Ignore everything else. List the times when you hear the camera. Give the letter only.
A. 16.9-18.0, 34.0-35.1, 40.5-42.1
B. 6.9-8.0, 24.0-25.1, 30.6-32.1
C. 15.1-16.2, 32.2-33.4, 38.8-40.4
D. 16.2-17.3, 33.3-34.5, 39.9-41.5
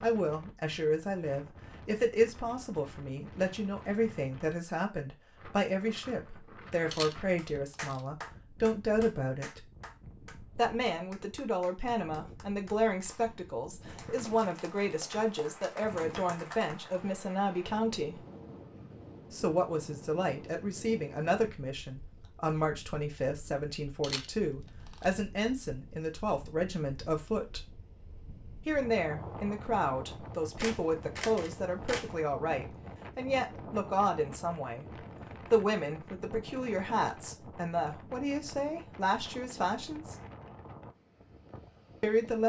B.